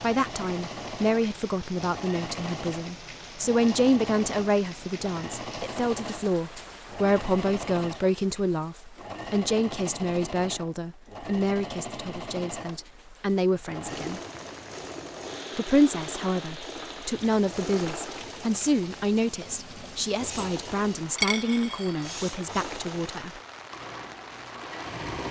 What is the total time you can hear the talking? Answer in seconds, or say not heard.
22 s.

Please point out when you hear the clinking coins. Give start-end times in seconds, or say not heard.
21.1-22.1.